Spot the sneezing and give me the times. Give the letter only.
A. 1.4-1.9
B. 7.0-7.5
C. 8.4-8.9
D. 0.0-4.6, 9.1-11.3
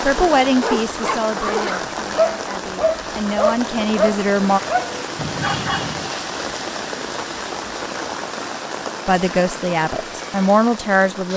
A.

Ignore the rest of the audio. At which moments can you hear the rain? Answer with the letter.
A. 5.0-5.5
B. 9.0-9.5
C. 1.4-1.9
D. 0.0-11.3
D.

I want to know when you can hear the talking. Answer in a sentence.
You can hear the talking from 0.0 to 4.6 s and from 9.1 to 11.3 s.